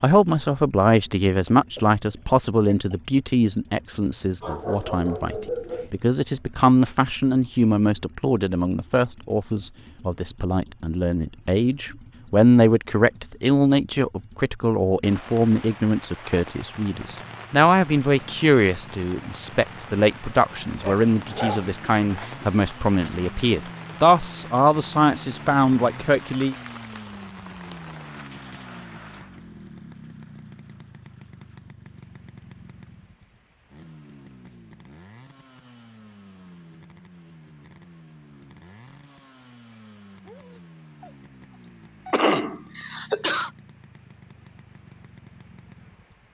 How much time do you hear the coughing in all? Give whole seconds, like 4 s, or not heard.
5 s.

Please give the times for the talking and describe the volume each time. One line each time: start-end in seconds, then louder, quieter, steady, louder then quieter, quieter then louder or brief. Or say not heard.
0.0-26.6 steady.